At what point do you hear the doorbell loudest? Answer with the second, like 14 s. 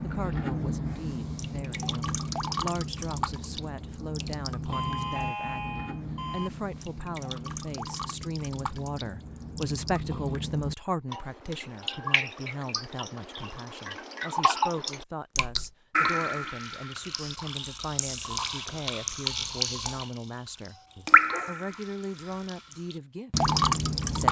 5 s.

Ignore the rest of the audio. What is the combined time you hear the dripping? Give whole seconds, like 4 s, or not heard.
23 s.